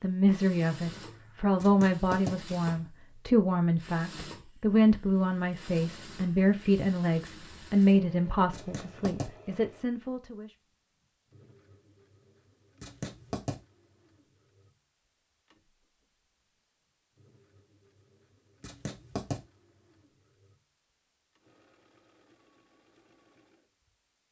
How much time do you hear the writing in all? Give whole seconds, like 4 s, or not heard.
3 s.